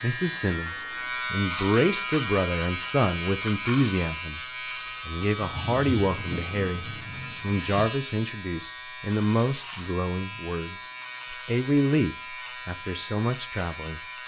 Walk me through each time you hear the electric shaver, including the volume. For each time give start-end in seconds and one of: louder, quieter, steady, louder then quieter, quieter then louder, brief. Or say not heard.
0.0-14.2 quieter.